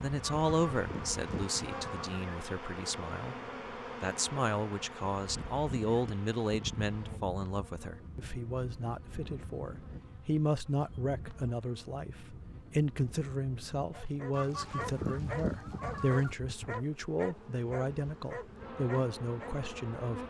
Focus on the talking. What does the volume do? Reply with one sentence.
The loudness of the talking stays about the same.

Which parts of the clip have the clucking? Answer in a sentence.
You can hear the clucking from 0.2 to 2.1 s and from 14.3 to 16.4 s.